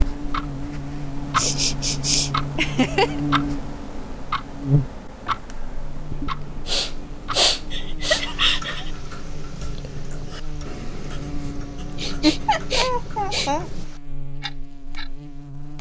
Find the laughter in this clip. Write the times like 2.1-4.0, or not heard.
2.5-3.2, 7.7-8.9, 12.2-13.7.